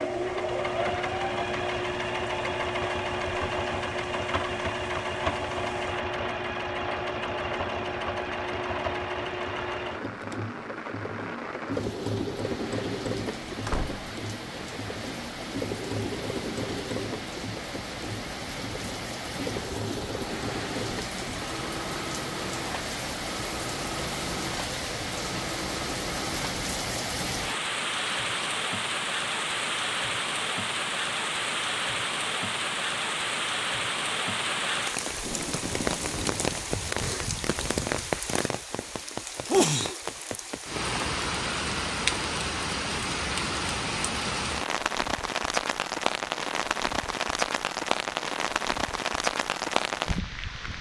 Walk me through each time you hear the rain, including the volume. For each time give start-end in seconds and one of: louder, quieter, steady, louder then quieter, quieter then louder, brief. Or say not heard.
0.0-50.7 louder.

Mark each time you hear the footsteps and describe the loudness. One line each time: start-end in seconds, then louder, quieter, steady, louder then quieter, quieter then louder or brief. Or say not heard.
not heard.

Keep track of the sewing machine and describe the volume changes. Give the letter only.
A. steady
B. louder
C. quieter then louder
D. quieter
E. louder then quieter
D.